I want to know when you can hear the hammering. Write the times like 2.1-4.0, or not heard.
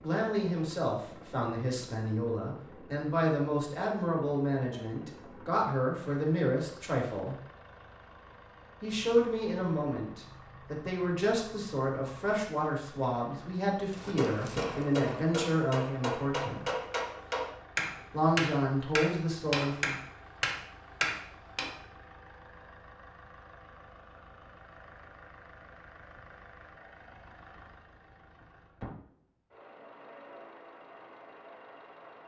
13.9-21.7.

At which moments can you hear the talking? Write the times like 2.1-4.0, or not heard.
0.0-7.3, 8.8-16.6, 18.1-19.9.